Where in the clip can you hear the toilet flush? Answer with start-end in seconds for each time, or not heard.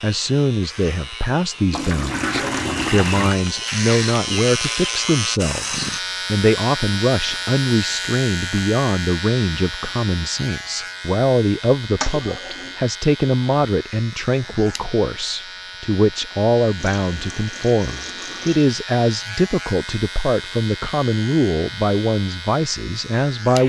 1.7-3.4, 12.0-12.8, 16.8-18.7.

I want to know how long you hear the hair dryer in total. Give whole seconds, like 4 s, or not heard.
not heard.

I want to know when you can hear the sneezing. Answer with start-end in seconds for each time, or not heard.
not heard.